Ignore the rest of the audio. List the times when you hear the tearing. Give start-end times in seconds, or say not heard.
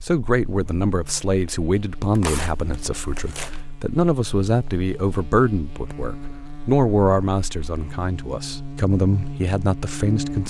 2.1-3.6.